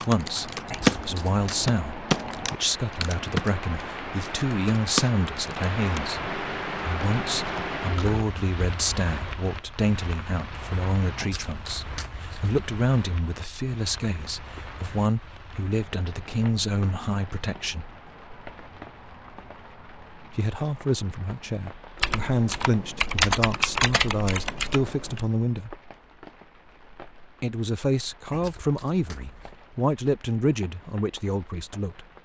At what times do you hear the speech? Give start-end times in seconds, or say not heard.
0.1-17.9, 20.4-25.8, 27.4-32.0.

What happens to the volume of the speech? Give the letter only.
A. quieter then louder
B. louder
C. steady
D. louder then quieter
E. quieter
C.